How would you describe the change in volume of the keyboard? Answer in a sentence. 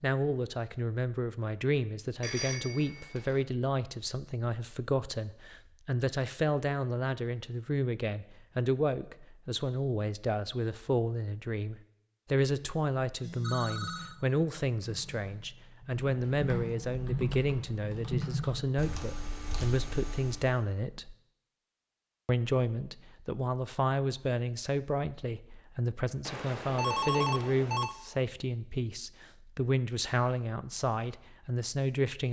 The volume of the keyboard goes up, then down.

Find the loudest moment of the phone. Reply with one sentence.
The loudest moment of the phone is at 27 seconds.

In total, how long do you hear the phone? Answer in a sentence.
The phone can be heard for 4 seconds in total.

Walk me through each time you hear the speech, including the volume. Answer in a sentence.
The speech can be heard from 0.0 to 21.1 s, at a steady volume; and from 22.2 to 32.2 s, at a steady volume.